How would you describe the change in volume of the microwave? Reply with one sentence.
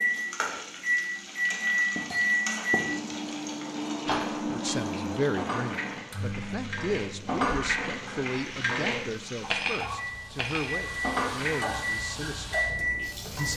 The volume of the microwave goes down, then up.